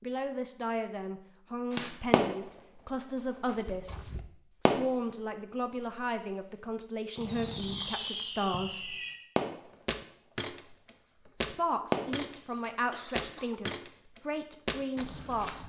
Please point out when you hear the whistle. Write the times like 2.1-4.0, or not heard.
not heard.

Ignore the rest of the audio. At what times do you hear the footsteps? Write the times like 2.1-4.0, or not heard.
9.8-15.6.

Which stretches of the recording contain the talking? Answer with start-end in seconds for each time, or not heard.
0.0-8.9, 11.4-15.6.